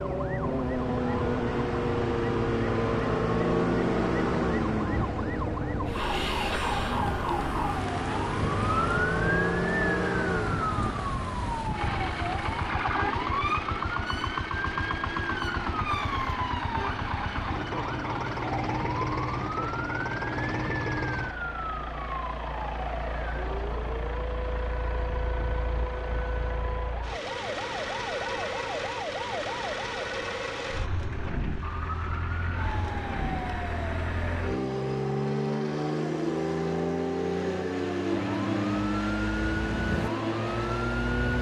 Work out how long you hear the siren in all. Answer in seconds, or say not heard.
41 s.